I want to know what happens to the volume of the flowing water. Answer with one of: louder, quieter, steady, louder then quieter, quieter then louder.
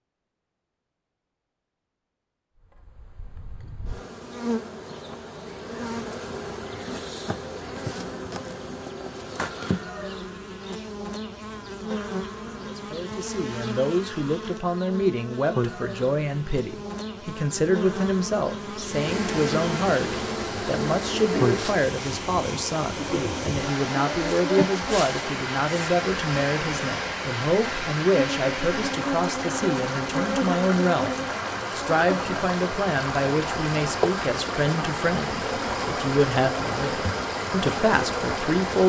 steady.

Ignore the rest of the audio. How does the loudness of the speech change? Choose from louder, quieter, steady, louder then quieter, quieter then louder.
steady.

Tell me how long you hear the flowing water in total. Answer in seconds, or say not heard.
20 s.